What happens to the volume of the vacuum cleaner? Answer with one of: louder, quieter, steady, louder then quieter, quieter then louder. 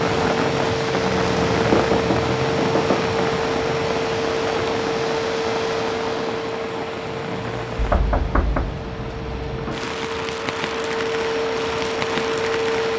quieter then louder.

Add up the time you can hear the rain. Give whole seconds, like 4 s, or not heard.
13 s.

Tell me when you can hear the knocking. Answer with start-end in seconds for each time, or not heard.
1.7-3.1, 7.8-8.8.